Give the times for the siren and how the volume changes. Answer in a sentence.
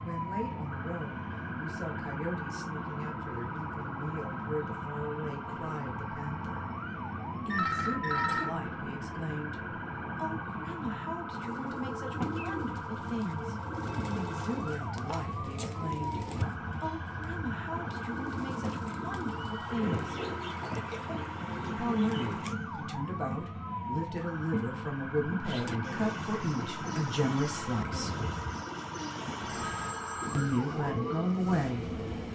You can hear the siren from 0.1 to 32.3 s, at a steady volume.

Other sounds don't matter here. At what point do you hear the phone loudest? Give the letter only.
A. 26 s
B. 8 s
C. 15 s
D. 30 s
B.